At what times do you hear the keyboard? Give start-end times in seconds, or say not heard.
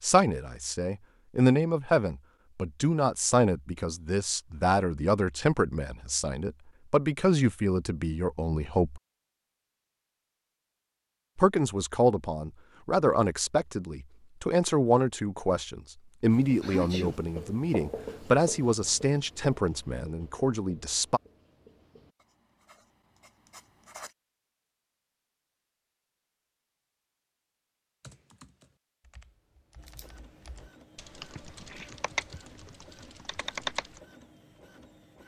28.0-34.0.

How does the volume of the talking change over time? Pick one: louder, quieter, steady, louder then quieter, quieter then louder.
steady.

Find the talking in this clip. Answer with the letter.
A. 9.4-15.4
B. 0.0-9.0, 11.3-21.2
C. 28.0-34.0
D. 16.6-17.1
B.